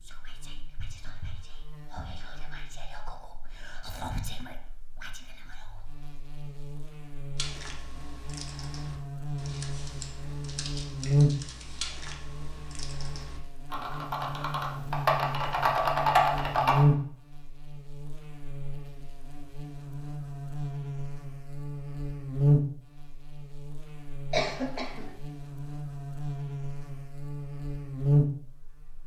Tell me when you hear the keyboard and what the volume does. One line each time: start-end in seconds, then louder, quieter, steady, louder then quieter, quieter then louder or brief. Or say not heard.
7.3-16.9 louder.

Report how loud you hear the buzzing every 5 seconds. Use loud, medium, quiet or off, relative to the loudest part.
quiet, medium, loud, loud, loud, loud.